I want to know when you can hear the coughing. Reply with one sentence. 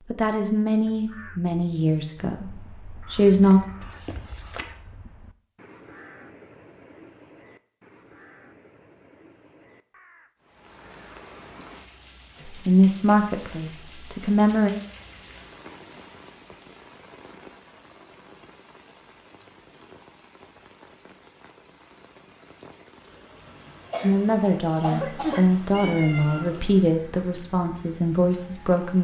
You can hear the coughing from 23.9 to 25.9 s.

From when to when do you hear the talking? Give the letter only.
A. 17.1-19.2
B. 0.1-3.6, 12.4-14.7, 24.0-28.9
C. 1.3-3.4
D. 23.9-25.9
B.